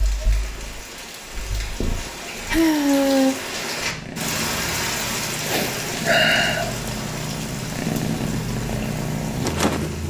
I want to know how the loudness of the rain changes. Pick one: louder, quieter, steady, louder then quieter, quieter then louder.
louder then quieter.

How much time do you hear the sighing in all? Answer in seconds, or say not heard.
3 s.